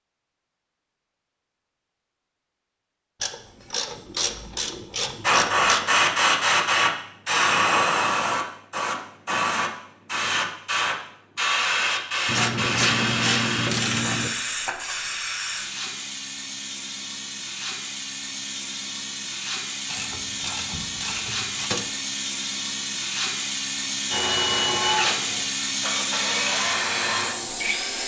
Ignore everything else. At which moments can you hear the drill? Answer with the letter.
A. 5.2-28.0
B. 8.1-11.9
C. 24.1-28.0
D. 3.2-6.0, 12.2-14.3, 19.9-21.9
C.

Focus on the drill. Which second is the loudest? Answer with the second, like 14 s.
25 s.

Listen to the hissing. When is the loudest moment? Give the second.
6 s.